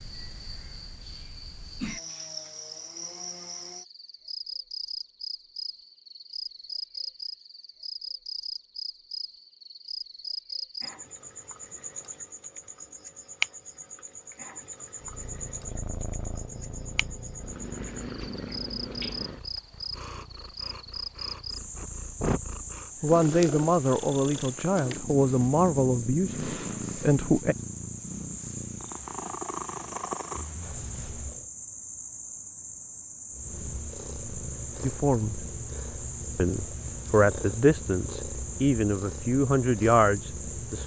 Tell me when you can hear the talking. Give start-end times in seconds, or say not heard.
23.0-27.6, 34.8-35.5, 36.4-40.8.